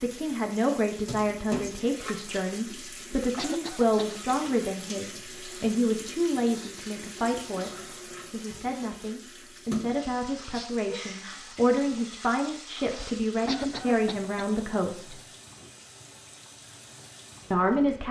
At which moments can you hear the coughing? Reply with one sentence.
The coughing can be heard from 3.4 to 4.2 s and from 13.4 to 14.6 s.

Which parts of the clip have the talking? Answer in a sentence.
The talking can be heard from 0.0 to 15.2 s and from 17.5 to 18.0 s.